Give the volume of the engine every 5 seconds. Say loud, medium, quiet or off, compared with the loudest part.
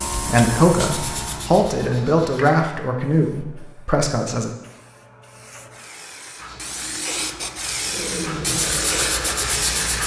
off, loud.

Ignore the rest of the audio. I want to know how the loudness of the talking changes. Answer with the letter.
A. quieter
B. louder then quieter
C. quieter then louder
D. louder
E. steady
A.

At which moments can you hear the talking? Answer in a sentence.
You can hear the talking from 0.1 to 4.5 s.